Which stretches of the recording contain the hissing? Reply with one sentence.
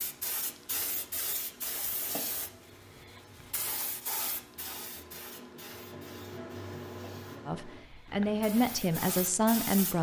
The hissing can be heard from 0.0 to 9.9 s.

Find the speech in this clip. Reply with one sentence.
You can hear the speech from 7.5 to 9.9 s.